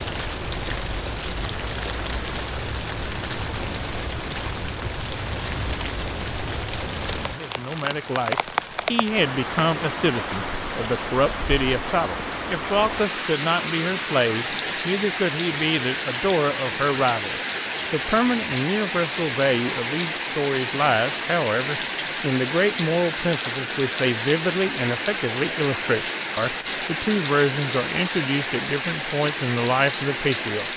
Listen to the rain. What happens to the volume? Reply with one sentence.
The volume of the rain stays about the same.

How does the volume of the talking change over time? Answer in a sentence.
The loudness of the talking stays about the same.